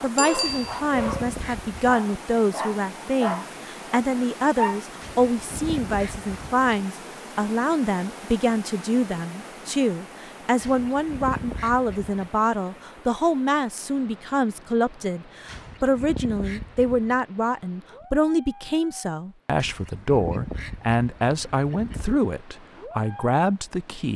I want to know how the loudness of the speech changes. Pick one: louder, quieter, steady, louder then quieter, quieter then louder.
steady.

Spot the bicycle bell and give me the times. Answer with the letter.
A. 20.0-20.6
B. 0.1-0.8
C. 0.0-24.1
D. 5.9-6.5
B.